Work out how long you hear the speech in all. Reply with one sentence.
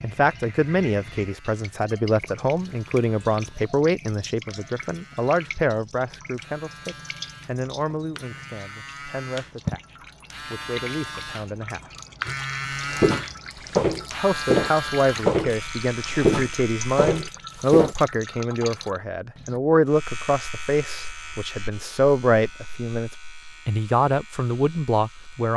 You can hear the speech for 23 seconds altogether.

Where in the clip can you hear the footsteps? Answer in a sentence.
The footsteps can be heard from 12.2 to 17.9 s.